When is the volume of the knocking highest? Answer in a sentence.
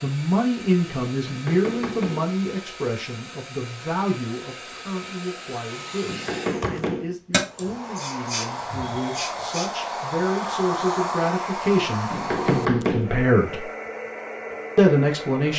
The loudest moment of the knocking is at 13 seconds.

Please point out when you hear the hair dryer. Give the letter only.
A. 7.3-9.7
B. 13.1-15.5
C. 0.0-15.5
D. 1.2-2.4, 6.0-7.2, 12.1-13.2
C.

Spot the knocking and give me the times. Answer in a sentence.
You can hear the knocking from 1.2 to 2.4 s, from 6.0 to 7.2 s and from 12.1 to 13.2 s.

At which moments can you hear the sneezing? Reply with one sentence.
You can hear the sneezing from 7.3 to 9.7 s.